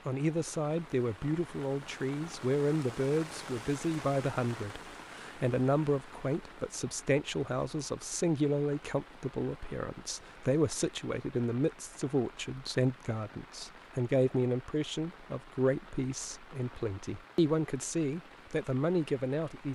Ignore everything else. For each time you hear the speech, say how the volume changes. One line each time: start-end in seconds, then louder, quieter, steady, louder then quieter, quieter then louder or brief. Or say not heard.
0.1-19.7 steady.